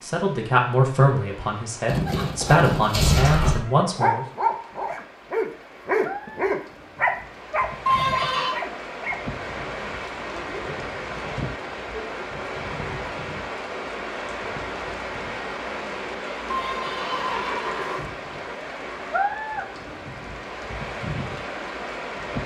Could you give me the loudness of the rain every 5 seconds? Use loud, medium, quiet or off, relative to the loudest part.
quiet, medium, loud, loud, loud.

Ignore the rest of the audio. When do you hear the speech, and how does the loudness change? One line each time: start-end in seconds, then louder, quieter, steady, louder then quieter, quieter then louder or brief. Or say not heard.
0.0-4.2 quieter then louder.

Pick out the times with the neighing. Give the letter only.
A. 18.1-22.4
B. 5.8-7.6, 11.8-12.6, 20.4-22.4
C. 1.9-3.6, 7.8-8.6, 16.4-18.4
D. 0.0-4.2
C.